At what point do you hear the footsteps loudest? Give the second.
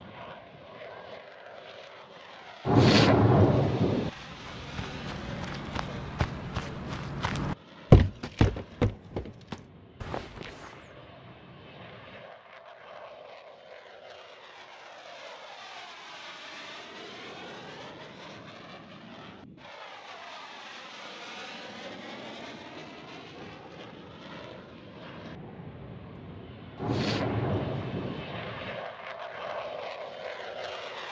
8 s.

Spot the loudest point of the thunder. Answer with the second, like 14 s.
3 s.